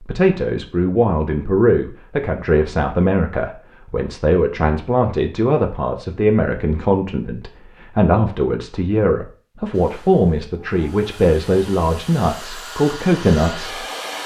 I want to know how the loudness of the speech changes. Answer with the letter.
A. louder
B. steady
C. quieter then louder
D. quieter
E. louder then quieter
B.